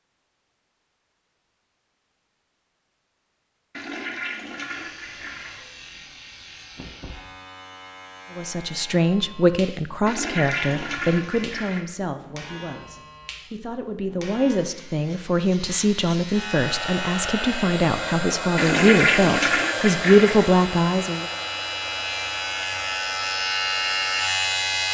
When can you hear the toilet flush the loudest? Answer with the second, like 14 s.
19 s.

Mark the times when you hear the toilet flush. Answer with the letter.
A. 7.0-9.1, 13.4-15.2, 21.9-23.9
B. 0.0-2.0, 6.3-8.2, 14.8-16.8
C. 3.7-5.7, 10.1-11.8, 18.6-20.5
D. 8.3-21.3
C.